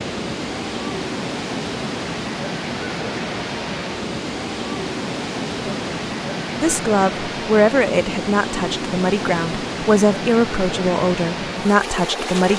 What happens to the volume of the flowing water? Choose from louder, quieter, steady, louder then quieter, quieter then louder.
steady.